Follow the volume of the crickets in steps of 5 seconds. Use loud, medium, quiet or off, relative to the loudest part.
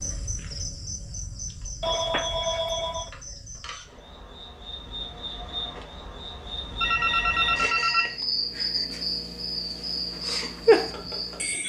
quiet, medium, loud.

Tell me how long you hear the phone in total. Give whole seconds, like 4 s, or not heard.
3 s.